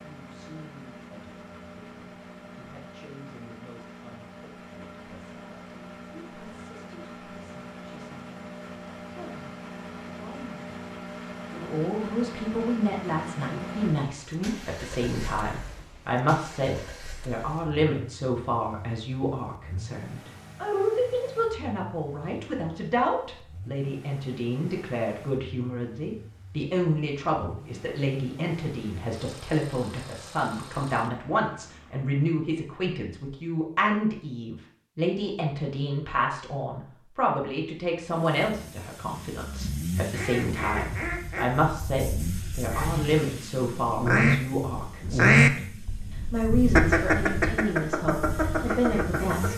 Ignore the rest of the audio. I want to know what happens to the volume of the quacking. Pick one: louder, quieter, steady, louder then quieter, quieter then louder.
louder then quieter.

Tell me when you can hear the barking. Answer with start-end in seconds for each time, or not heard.
not heard.